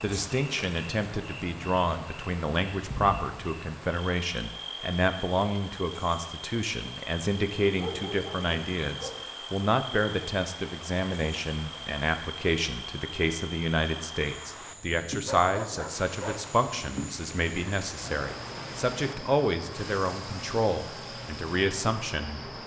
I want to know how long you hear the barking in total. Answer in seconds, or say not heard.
3 s.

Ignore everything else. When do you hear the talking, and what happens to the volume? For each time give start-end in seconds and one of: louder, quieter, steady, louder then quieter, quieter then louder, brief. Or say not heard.
0.0-22.5 steady.